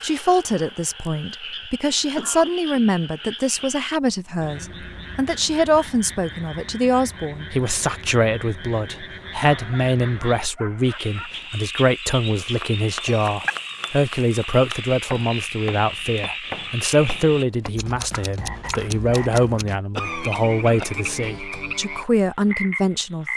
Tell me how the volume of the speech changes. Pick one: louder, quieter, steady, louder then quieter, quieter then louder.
steady.